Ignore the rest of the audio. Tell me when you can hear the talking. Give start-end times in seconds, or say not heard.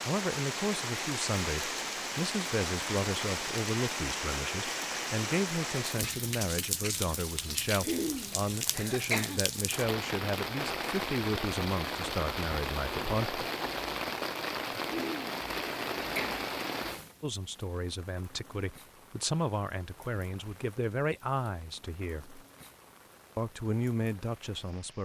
0.0-13.4, 17.2-22.4, 23.4-25.0.